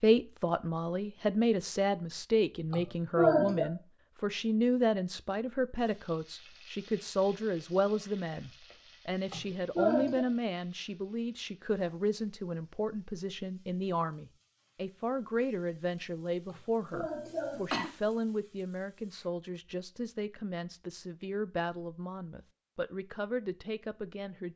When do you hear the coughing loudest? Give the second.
3 s.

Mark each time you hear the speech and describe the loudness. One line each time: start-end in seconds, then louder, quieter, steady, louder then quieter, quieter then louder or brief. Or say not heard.
0.0-24.5 quieter.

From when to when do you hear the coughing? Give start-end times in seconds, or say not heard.
2.7-3.7, 9.3-10.2, 16.5-17.9.